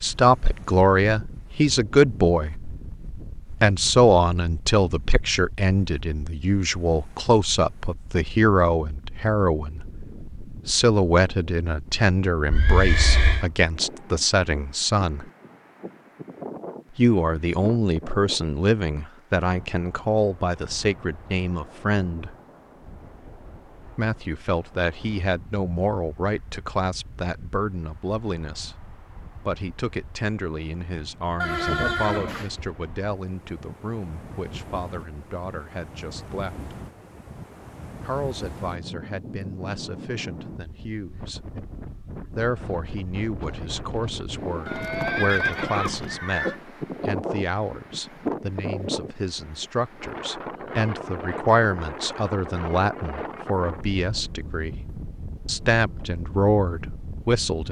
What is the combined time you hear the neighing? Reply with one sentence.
You can hear the neighing for 4 seconds altogether.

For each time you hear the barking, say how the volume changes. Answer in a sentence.
The barking can't be heard in this clip.